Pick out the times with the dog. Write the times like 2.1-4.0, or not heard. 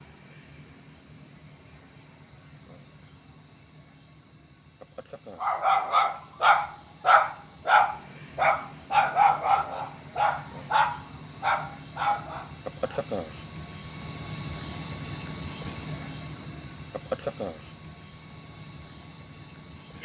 5.4-13.0.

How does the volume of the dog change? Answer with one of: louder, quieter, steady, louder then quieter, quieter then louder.
quieter.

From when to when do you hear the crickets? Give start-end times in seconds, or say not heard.
0.0-19.9.